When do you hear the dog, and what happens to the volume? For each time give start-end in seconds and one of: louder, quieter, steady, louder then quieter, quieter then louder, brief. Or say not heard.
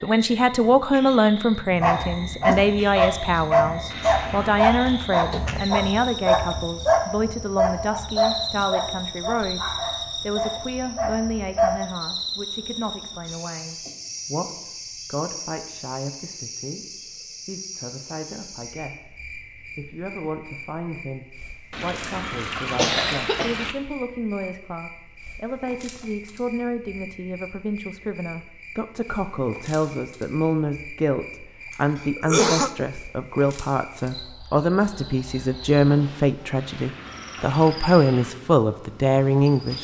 1.8-11.9 quieter.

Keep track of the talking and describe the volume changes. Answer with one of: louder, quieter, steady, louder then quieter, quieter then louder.
quieter then louder.